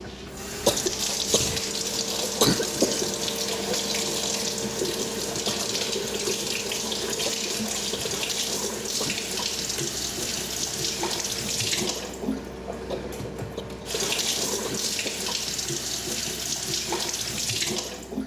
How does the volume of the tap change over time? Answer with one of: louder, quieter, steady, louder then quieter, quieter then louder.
steady.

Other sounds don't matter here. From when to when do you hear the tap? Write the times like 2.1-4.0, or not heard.
0.0-18.2.